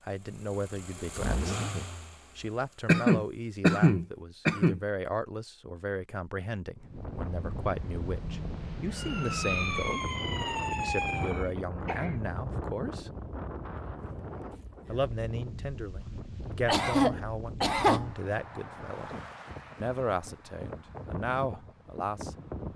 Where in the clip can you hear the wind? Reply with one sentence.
You can hear the wind from 6.8 to 22.7 s.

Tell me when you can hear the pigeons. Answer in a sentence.
The pigeons can't be heard in this clip.